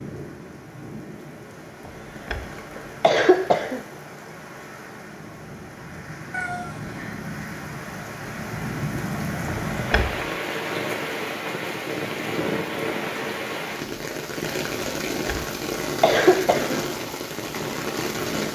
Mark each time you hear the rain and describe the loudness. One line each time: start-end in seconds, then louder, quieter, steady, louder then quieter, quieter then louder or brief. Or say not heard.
0.0-18.5 louder.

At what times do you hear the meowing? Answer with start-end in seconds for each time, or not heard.
6.3-7.2.